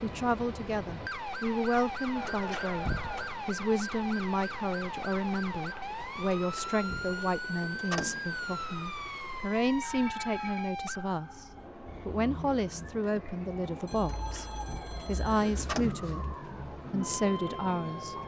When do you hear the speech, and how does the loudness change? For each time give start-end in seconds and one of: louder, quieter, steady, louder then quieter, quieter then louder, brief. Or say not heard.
0.0-18.2 steady.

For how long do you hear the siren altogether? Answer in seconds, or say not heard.
18 s.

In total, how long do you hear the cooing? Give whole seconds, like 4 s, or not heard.
not heard.